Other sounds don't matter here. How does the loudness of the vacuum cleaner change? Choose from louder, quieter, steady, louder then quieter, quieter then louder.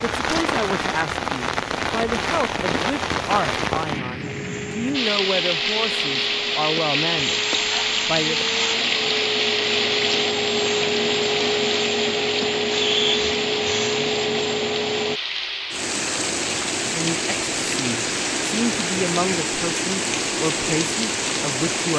louder.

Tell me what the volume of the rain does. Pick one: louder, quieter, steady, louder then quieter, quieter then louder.
steady.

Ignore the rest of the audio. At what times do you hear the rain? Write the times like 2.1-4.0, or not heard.
0.0-21.9.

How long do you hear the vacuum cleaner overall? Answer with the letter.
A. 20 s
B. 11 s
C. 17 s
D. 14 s
B.